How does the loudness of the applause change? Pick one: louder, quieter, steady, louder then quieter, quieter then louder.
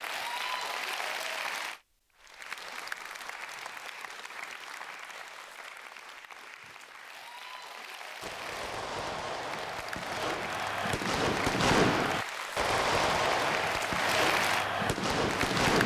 quieter then louder.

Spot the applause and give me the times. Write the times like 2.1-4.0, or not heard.
0.0-15.8.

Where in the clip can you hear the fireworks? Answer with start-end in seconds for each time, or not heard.
7.8-15.8.